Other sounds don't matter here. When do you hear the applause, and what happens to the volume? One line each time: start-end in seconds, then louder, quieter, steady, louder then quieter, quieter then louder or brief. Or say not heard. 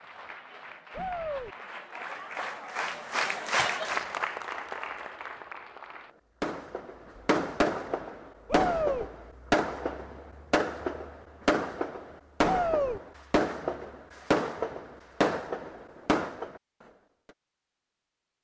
0.0-6.2 louder then quieter.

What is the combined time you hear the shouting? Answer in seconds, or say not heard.
2 s.